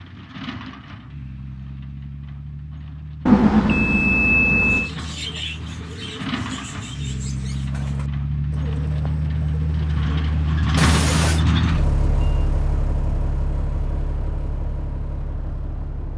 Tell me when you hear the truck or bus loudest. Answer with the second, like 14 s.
11 s.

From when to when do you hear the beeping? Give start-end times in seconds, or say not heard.
3.2-4.9.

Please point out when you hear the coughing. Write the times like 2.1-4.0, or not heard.
10.8-11.4.